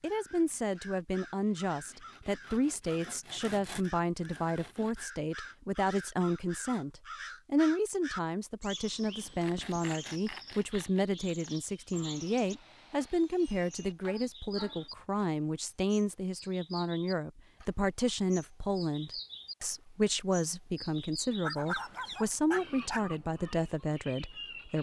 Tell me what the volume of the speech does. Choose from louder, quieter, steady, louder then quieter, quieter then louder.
steady.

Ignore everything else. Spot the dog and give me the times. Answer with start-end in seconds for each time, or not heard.
21.4-23.1.